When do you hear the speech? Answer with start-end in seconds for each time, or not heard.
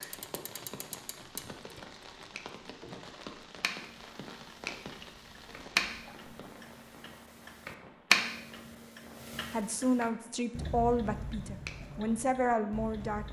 9.5-13.2.